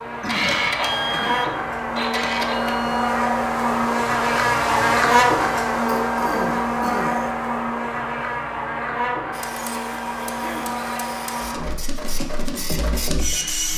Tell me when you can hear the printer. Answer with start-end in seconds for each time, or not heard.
0.1-3.1, 9.3-13.7.